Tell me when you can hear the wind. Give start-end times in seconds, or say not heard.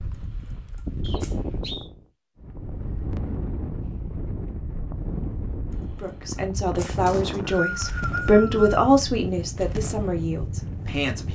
0.0-11.2.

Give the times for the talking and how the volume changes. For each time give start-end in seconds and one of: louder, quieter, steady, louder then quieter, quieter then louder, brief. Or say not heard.
5.8-11.2 louder then quieter.